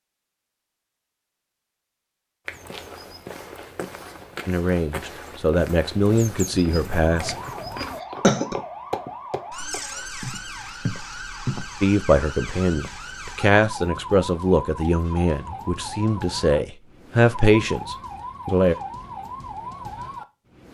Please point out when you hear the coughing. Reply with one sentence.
You can hear the coughing from 7.8 to 8.6 s.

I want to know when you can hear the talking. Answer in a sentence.
You can hear the talking from 4.5 to 7.3 s and from 11.8 to 18.8 s.